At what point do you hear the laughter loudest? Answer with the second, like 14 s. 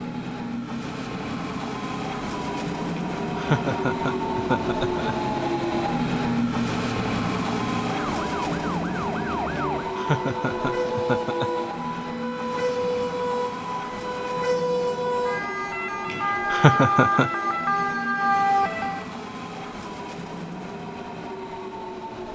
17 s.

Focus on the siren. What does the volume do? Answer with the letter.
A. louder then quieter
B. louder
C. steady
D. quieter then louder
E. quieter
B.